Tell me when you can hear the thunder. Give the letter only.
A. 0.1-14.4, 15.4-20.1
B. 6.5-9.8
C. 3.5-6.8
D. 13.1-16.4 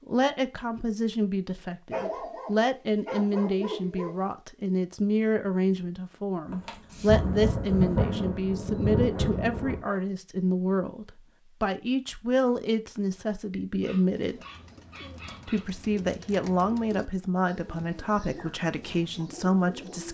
B.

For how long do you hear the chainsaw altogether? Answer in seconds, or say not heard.
not heard.